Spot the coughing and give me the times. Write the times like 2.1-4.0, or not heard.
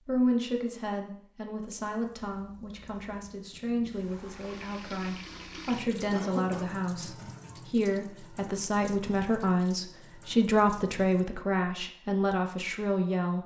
6.1-6.8.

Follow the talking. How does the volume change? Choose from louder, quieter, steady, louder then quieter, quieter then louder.
louder.